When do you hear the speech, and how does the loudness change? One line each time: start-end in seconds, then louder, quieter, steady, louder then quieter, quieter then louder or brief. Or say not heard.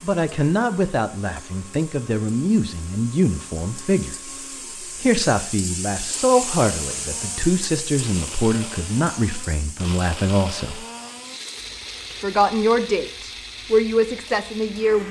0.0-10.8 steady
12.1-15.0 brief.